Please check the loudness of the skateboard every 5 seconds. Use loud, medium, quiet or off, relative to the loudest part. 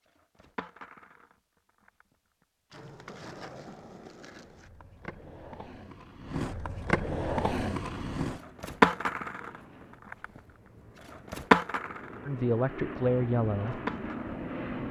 quiet, loud, loud.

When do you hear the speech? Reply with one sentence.
The speech can be heard from 12.2 to 13.8 s.